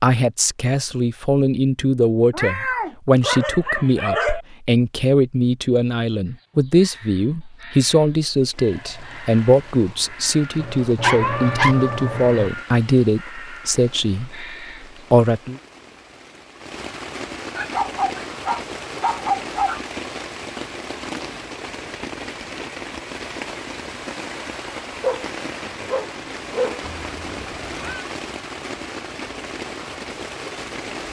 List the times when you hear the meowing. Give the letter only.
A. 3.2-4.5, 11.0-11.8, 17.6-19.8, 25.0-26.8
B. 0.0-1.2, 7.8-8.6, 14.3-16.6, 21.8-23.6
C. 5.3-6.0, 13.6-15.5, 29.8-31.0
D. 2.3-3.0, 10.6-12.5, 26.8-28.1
D.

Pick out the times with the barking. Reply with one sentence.
The barking can be heard from 3.2 to 4.5 s, from 11.0 to 11.8 s, from 17.6 to 19.8 s and from 25.0 to 26.8 s.